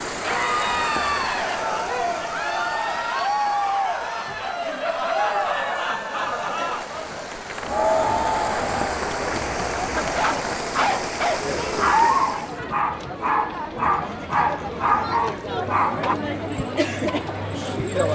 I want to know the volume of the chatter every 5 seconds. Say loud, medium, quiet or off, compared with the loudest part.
loud, loud, medium, loud.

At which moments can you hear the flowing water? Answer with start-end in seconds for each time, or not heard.
0.0-12.7.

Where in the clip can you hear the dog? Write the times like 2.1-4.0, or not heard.
9.9-16.1.